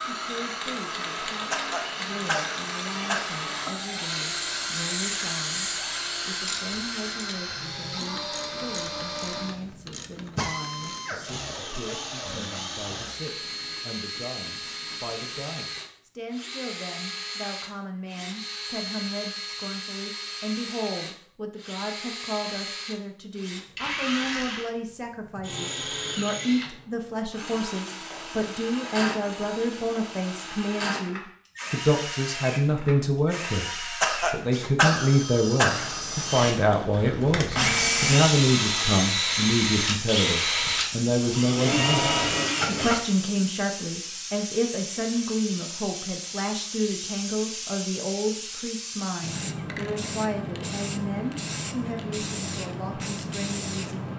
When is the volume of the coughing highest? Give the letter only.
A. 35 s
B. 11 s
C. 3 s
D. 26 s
A.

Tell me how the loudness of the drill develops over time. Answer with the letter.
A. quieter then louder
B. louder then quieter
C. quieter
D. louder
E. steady
D.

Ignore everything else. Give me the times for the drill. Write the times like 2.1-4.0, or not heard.
0.0-43.2.